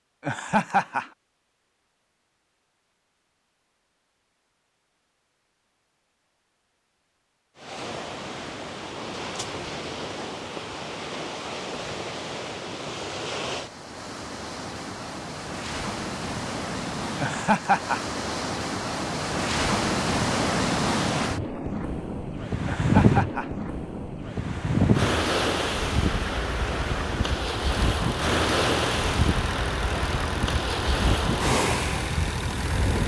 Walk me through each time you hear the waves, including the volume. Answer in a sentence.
The waves can be heard from 7.5 to 33.0 s, getting louder.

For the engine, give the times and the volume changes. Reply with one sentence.
You can hear the engine from 27.7 to 33.0 s, at a steady volume.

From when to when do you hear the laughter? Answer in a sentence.
You can hear the laughter from 0.2 to 1.1 s, from 17.1 to 18.0 s and from 22.6 to 23.5 s.